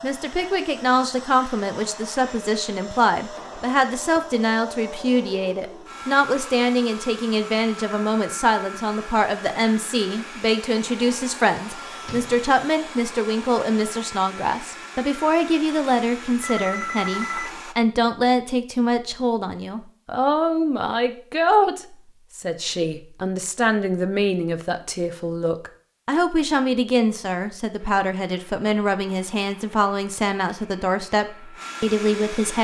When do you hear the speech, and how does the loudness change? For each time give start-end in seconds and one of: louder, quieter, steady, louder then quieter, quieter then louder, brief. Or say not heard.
0.0-32.6 steady.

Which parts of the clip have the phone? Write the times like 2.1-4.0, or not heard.
16.4-17.6.